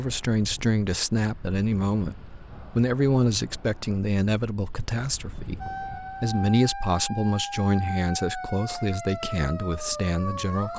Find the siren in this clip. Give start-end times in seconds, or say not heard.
5.6-10.7.